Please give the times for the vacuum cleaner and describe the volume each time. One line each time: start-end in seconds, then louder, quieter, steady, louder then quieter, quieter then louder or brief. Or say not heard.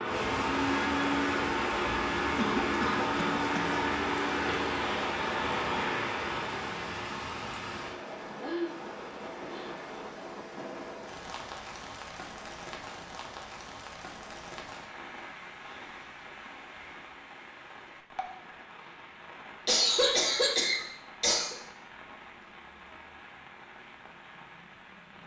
0.0-10.1 quieter.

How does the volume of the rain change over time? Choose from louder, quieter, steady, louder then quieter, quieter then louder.
quieter.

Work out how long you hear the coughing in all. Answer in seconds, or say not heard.
3 s.